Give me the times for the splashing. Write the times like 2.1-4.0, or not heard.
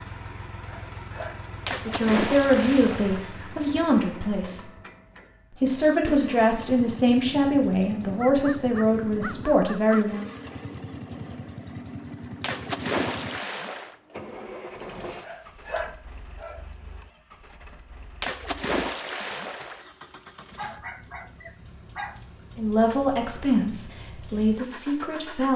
1.6-3.2, 12.4-13.9, 18.2-19.9.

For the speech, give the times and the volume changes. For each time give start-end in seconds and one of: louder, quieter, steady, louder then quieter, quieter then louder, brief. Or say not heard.
1.8-4.7 brief
5.6-10.2 steady
22.6-25.5 brief.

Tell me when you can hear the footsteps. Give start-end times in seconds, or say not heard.
not heard.